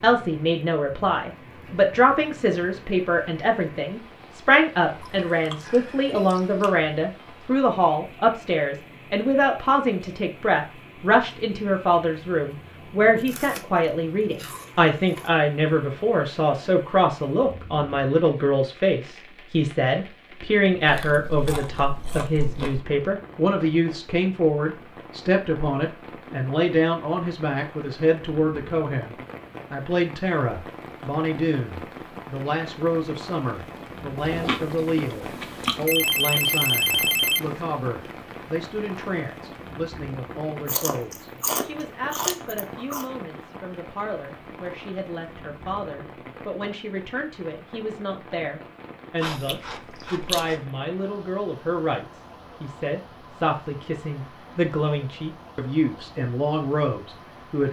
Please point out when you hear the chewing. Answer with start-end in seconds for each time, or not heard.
5.0-6.8, 13.2-15.3, 20.9-22.8, 34.1-35.9, 40.6-43.0, 49.2-50.5.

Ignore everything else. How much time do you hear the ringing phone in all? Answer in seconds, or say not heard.
2 s.